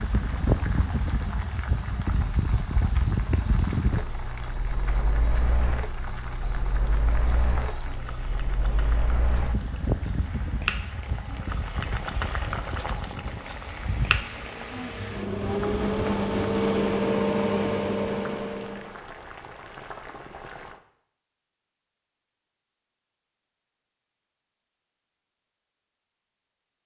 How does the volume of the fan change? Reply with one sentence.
The volume of the fan goes down, then up.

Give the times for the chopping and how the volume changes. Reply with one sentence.
You can't hear the chopping here.